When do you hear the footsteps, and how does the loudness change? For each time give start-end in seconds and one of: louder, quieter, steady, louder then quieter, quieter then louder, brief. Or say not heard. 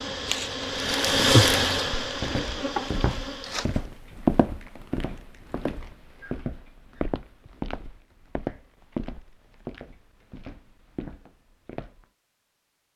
2.0-12.1 louder then quieter.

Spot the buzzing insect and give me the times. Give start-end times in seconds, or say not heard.
0.0-3.8.